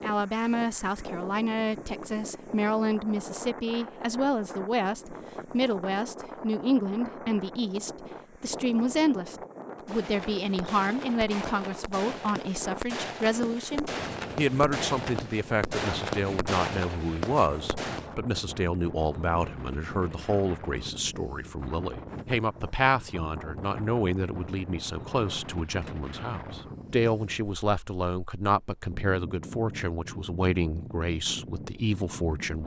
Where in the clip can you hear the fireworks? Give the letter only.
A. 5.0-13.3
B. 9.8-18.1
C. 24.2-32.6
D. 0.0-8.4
B.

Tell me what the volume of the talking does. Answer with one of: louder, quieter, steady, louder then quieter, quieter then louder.
steady.